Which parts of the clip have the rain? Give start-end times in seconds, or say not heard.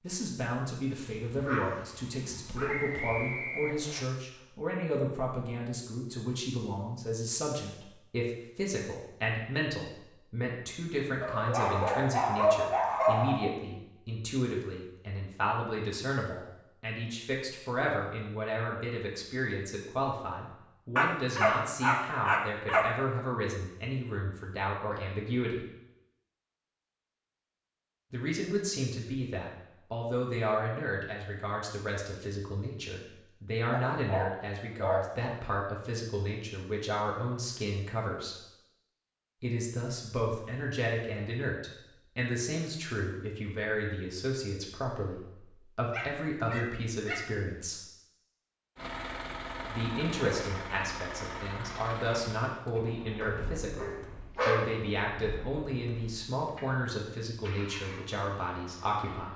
not heard.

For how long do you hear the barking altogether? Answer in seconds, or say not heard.
10 s.